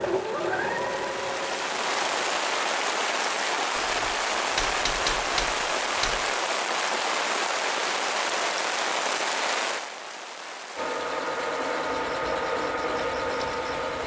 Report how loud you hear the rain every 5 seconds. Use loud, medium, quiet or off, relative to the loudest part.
loud, loud, quiet.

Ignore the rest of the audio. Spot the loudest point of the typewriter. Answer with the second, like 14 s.
5 s.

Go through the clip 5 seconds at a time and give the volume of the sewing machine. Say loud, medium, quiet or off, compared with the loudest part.
loud, off, loud.